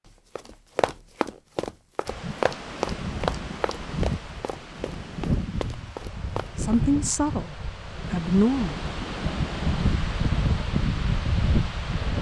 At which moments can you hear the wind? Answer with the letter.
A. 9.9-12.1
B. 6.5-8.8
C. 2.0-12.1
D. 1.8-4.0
C.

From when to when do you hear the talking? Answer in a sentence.
You can hear the talking from 6.5 to 8.8 s.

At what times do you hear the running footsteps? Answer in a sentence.
The running footsteps can be heard from 0.3 to 6.8 s.